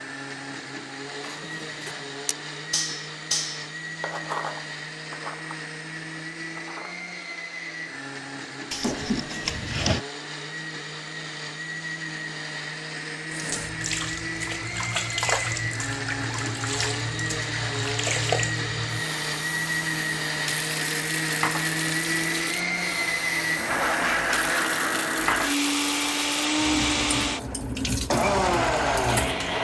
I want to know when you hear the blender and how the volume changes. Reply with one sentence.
The blender can be heard from 0.0 to 29.6 s, getting louder.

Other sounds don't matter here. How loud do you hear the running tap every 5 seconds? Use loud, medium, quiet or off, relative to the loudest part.
off, off, loud, loud, medium, loud.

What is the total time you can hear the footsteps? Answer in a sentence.
You can't hear the footsteps here.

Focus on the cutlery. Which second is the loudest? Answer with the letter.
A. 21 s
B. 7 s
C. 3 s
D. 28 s
C.